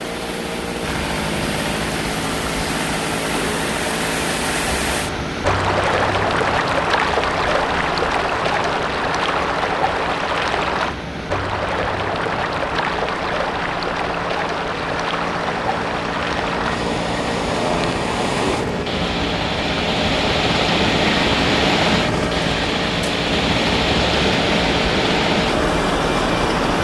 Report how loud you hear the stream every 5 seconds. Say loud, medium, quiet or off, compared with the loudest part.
medium, loud, loud, loud, loud, loud.